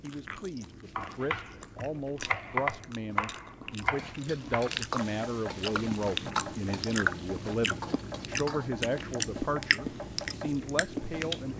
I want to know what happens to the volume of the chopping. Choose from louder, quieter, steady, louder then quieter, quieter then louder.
quieter.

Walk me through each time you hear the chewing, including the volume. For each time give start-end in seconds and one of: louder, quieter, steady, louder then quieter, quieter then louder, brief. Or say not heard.
0.0-11.5 louder.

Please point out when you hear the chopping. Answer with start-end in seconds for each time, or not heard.
0.9-11.4.